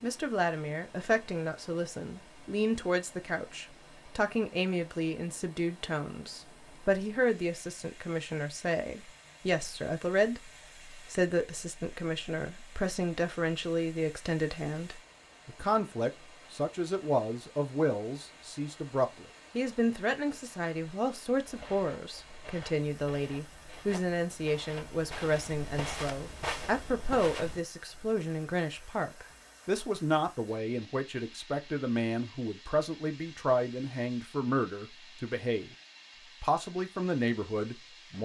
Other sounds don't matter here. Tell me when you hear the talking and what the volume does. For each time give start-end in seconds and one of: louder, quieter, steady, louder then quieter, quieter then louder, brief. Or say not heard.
0.0-35.8 steady
36.4-38.2 brief.